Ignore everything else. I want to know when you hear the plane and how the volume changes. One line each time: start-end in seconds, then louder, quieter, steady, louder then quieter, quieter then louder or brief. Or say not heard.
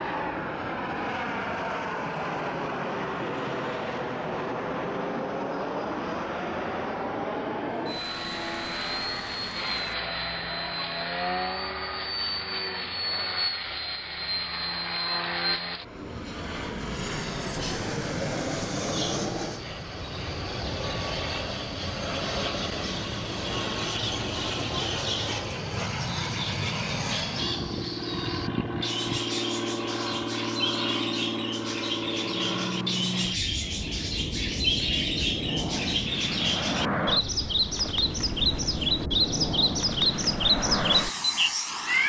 0.0-42.0 steady.